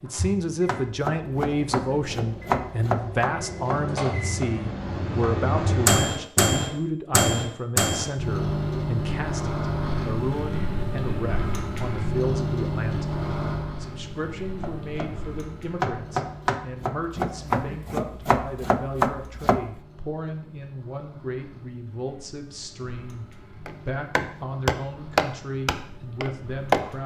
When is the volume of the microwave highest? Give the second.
6 s.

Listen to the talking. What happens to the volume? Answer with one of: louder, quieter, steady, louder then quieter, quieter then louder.
quieter.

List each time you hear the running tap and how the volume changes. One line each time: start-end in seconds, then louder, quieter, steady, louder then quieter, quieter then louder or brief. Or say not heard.
not heard.